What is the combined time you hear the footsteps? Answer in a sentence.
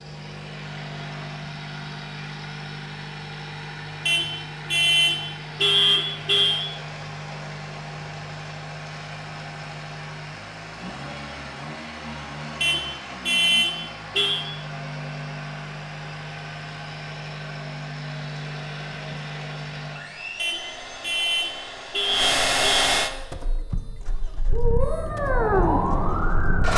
The footsteps can't be heard in this clip.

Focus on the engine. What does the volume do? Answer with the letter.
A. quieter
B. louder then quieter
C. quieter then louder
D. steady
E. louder
E.